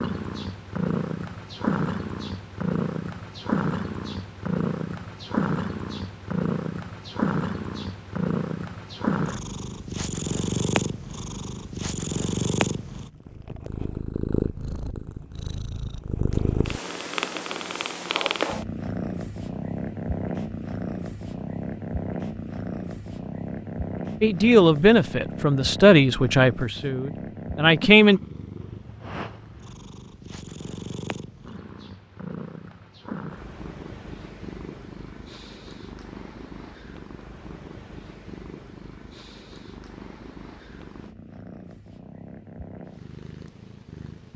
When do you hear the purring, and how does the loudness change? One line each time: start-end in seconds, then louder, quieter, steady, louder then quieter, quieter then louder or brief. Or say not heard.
0.0-44.3 quieter.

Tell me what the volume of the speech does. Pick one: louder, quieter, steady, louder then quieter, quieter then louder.
quieter then louder.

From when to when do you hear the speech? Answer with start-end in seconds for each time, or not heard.
24.2-28.2.